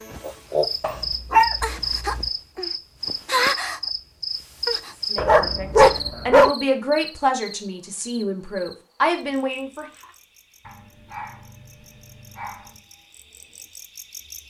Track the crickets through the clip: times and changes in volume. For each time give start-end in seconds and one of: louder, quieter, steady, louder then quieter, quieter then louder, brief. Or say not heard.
0.0-14.4 quieter.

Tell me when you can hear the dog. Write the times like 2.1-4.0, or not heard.
0.8-2.2, 5.2-6.5, 10.7-12.8.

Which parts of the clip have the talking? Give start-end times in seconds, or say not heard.
5.1-9.8.